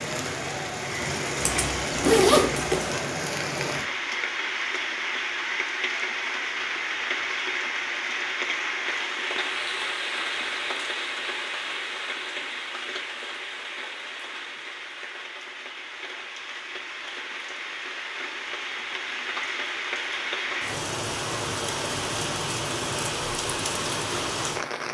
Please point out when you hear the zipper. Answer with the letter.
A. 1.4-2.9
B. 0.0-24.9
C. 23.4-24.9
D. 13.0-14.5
A.